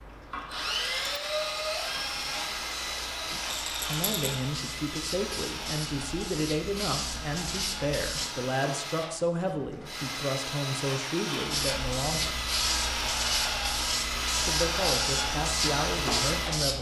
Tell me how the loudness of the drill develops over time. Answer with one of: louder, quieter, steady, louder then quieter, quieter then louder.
quieter then louder.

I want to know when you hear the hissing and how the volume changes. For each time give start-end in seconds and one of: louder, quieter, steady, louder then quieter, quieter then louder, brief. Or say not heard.
1.6-8.3 louder
11.4-16.7 steady.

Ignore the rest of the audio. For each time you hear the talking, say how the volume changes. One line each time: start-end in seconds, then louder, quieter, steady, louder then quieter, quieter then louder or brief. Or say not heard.
3.3-12.3 steady
14.4-16.7 brief.